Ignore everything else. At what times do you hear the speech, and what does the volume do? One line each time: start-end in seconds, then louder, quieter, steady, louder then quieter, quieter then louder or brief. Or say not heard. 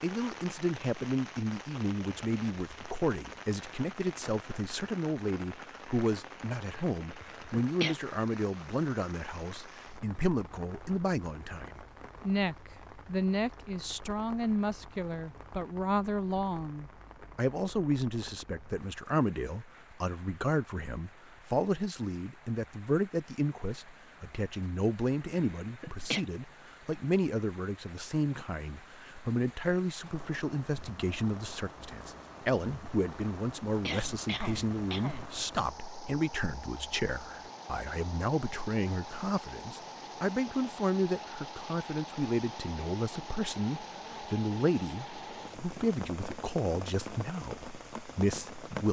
0.0-48.8 steady.